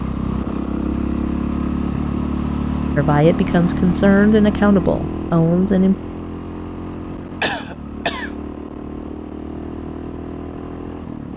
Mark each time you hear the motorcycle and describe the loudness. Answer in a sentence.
The motorcycle can be heard from 0.0 to 11.3 s, getting quieter.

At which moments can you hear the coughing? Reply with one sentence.
The coughing can be heard from 7.4 to 8.3 s.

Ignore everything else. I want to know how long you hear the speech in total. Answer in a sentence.
You can hear the speech for 3 seconds altogether.